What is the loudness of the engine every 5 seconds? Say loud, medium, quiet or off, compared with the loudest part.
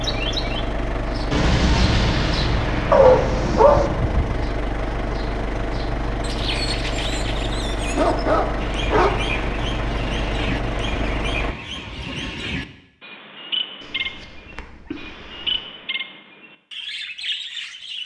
loud, loud, loud, off.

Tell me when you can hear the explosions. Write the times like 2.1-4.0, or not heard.
1.3-3.9.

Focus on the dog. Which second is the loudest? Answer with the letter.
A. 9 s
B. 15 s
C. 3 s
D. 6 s
C.